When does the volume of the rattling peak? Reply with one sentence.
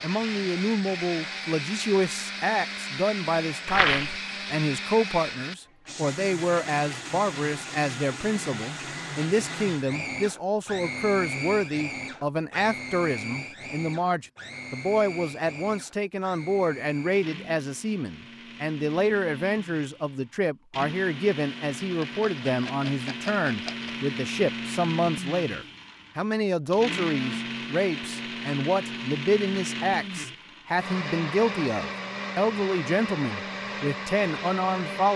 The volume of the rattling peaks at 4 seconds.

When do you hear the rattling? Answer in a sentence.
The rattling can be heard from 3.6 to 4.2 s and from 22.0 to 23.9 s.